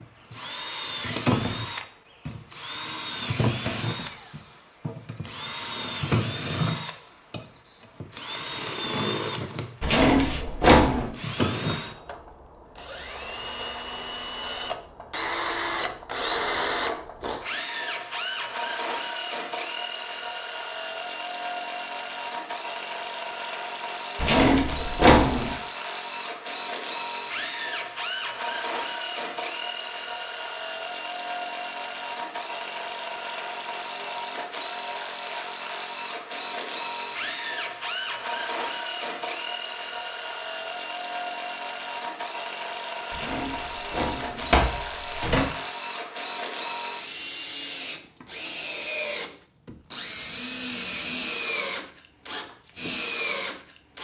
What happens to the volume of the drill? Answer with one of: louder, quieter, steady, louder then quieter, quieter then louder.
steady.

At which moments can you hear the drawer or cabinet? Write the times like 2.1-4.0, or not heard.
9.8-11.1, 24.1-25.5, 43.1-45.5.